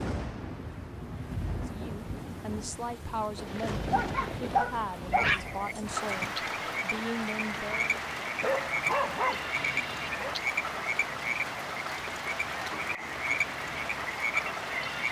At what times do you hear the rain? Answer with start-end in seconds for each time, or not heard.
0.0-15.0.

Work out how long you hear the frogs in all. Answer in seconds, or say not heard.
10 s.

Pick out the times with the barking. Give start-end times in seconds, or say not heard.
3.9-5.5, 8.4-10.3.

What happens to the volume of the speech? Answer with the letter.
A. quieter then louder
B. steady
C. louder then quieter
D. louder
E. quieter
B.